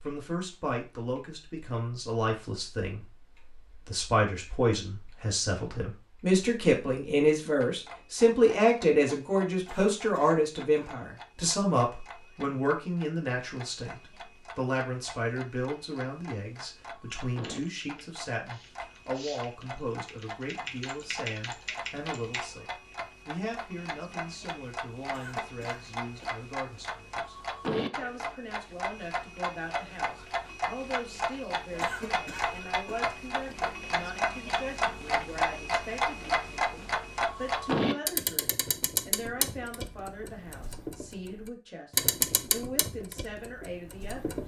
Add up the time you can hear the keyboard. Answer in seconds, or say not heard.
5 s.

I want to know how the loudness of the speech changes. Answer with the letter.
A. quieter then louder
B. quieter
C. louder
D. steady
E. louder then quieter
B.